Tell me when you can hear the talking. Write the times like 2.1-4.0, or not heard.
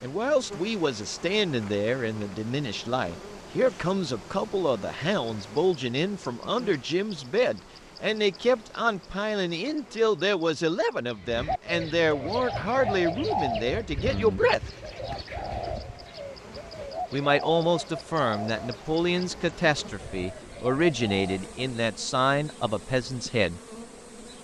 0.0-14.6, 17.1-23.6.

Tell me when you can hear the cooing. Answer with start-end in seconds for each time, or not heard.
11.2-21.4.